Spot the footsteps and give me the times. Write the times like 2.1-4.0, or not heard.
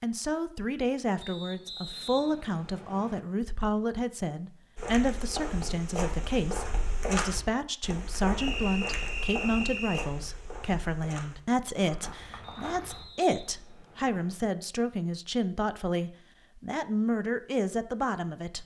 4.8-13.1.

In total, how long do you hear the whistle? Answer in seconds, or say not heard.
6 s.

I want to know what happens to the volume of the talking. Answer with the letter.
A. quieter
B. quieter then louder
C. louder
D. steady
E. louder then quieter
D.